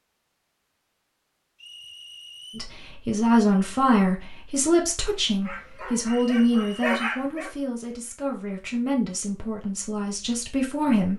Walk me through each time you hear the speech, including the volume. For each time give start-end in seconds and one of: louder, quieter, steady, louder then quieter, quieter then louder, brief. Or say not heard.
2.5-11.1 quieter.